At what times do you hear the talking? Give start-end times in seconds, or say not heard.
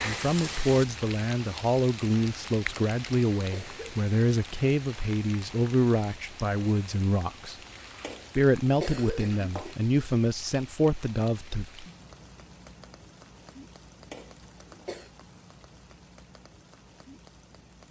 0.0-7.5, 8.3-11.8.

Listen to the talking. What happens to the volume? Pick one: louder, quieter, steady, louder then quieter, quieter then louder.
steady.